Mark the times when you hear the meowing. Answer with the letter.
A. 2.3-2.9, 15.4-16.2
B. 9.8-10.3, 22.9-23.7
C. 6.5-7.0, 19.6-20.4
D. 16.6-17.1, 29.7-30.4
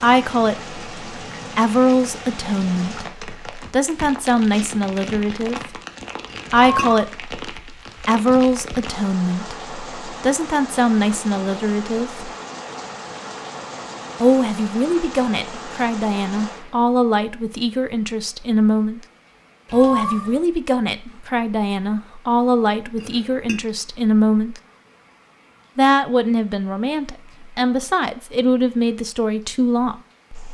C.